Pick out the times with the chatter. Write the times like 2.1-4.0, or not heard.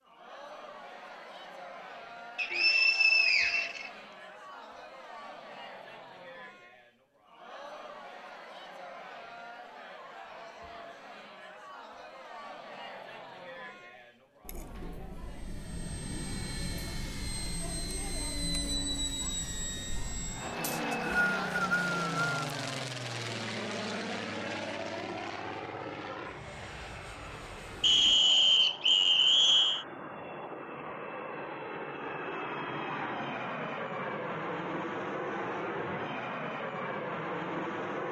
0.0-22.9.